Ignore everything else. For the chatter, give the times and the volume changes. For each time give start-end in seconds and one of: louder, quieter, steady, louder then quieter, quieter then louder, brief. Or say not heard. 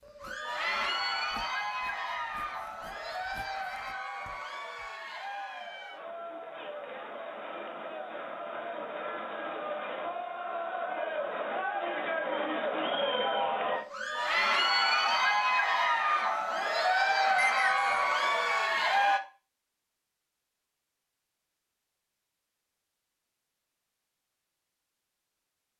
0.0-19.2 quieter then louder.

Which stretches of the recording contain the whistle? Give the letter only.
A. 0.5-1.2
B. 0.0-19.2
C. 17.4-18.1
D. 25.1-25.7
C.